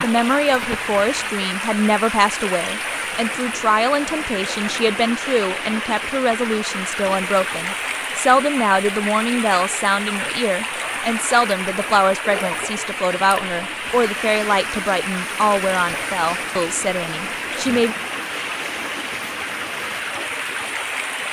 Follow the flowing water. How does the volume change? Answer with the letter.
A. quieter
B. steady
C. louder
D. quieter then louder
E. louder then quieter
B.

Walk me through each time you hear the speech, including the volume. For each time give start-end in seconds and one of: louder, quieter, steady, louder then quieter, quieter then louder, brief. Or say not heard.
0.0-17.9 steady.